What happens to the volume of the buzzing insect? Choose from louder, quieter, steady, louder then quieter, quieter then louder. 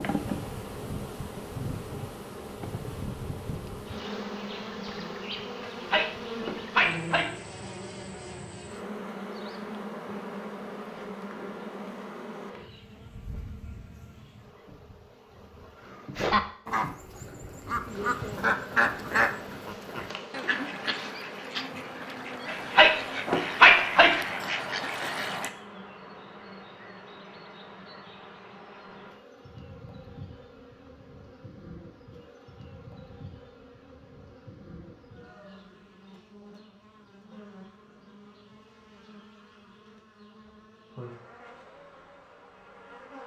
quieter.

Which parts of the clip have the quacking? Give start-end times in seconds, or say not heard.
16.1-25.5.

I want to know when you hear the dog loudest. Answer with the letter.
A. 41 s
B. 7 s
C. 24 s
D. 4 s
C.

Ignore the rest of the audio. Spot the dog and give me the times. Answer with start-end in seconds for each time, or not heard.
5.6-7.3, 22.4-24.2.